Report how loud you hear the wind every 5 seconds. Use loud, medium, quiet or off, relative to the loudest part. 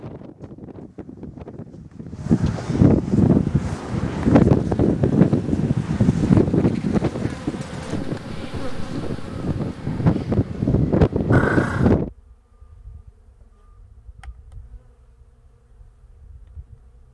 loud, loud, loud, off.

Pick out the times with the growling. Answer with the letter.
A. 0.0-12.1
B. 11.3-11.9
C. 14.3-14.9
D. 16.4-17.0
B.